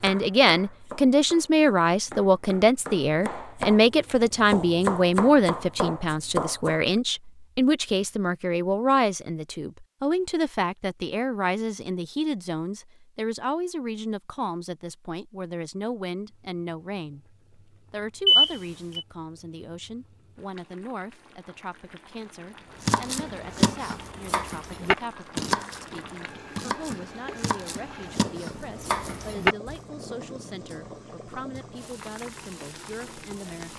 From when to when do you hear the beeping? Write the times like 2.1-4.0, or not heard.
18.2-19.1.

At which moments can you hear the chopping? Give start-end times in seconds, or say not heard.
0.0-6.8, 22.8-29.8.